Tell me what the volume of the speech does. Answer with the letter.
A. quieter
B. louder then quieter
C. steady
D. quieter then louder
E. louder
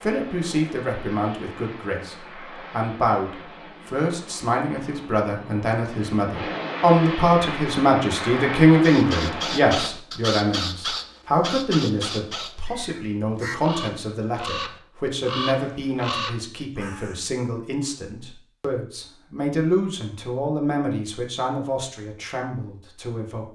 B.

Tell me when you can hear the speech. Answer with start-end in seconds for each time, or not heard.
0.0-23.5.